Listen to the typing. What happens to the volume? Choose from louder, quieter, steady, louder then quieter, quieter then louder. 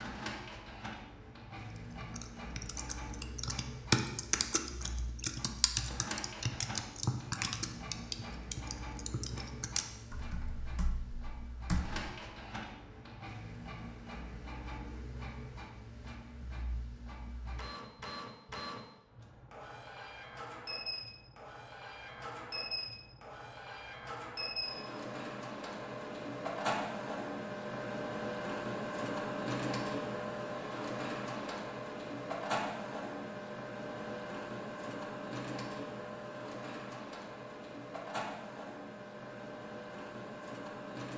quieter.